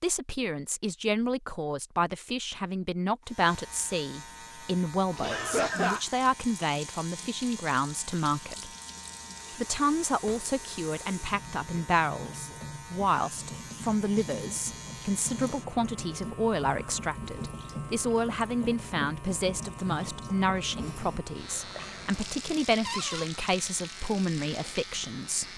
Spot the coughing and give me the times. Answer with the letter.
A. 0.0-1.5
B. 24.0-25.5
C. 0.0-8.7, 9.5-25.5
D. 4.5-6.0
D.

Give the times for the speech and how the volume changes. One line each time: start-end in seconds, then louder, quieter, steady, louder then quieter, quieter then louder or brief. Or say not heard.
0.0-8.7 steady
9.5-25.5 steady.